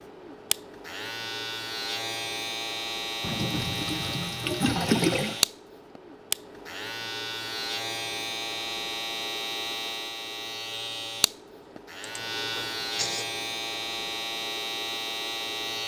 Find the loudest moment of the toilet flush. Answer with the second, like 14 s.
5 s.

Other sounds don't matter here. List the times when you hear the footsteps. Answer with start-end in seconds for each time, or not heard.
not heard.